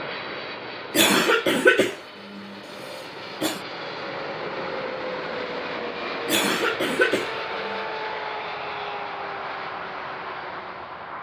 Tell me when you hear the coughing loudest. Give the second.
2 s.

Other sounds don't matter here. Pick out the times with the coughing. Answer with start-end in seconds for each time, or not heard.
0.9-3.6, 6.2-7.8.